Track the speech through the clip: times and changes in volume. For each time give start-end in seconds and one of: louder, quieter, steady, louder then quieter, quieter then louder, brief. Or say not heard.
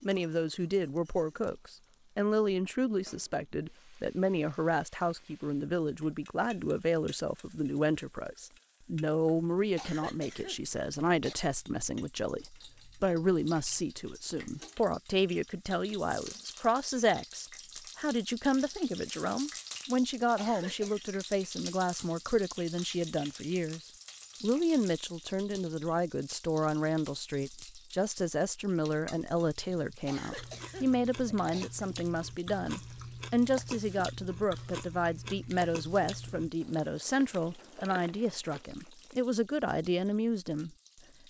0.0-41.2 steady.